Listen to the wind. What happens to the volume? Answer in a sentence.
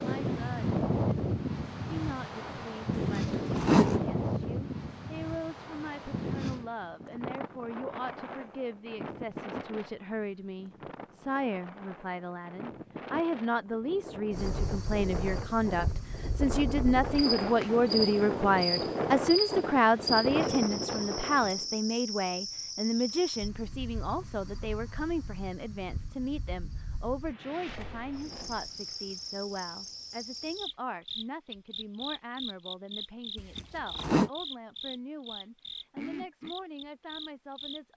The loudness of the wind goes down, then up.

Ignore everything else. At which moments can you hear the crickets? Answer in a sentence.
The crickets can be heard from 14.3 to 37.9 s.